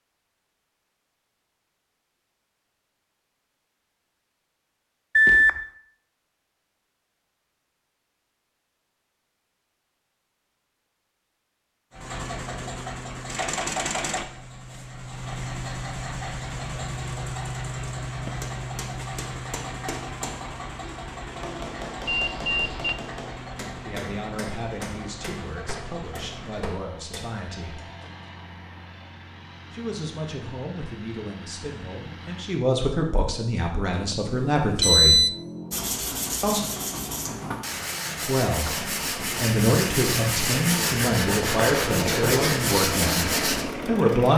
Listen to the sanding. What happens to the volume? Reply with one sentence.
The loudness of the sanding goes up.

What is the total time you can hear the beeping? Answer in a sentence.
You can hear the beeping for 3 seconds altogether.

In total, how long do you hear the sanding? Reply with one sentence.
You can hear the sanding for 8 seconds altogether.